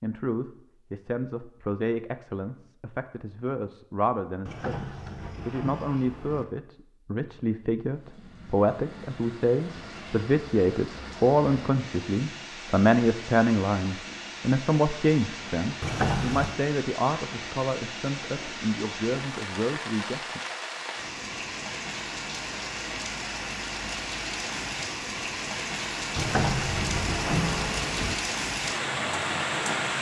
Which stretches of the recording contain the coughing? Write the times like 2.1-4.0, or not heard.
not heard.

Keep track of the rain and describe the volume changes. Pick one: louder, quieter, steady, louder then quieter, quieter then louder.
louder.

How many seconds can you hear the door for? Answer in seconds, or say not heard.
5 s.